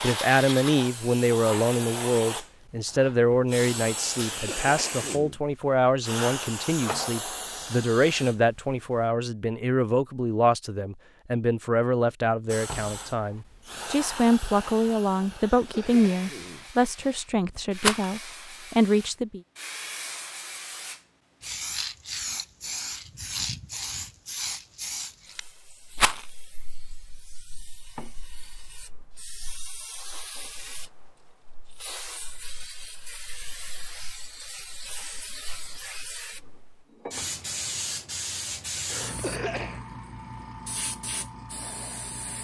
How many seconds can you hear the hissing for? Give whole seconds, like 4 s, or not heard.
39 s.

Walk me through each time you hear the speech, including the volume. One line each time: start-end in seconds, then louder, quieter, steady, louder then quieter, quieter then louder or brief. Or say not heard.
0.0-19.4 steady.